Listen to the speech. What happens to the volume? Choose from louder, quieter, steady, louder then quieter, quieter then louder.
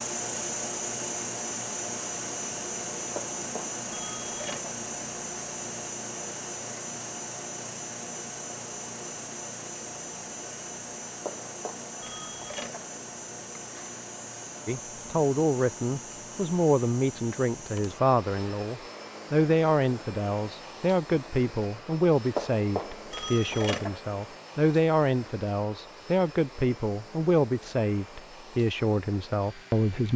steady.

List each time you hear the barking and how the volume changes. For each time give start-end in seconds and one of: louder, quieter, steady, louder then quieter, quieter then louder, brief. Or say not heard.
not heard.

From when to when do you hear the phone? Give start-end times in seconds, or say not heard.
3.1-4.8, 11.2-12.9, 22.4-24.0.